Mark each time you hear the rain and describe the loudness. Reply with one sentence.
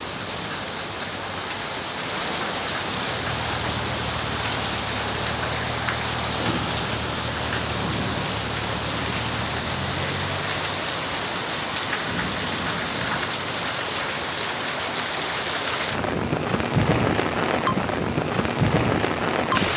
You can hear the rain from 0.0 to 19.7 s, at a steady volume.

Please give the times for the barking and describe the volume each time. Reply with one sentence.
The barking can't be heard in this clip.